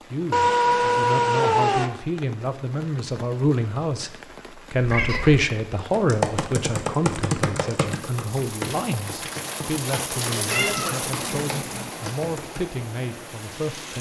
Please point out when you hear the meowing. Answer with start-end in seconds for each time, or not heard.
0.3-1.9, 4.8-5.5, 10.4-11.9.